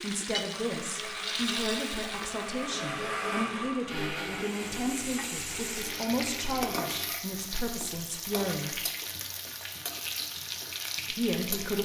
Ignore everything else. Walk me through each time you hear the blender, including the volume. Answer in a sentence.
You can hear the blender from 0.5 to 7.2 s, getting louder then quieter.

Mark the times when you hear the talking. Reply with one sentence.
You can hear the talking from 0.0 to 8.8 s and from 11.1 to 11.7 s.